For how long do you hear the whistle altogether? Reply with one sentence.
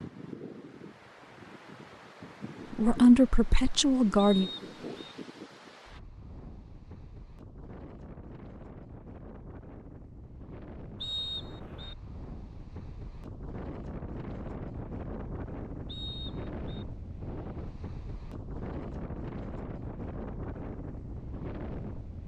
The whistle can be heard for 3 seconds in total.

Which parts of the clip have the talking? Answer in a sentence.
The talking can be heard from 2.8 to 4.5 s.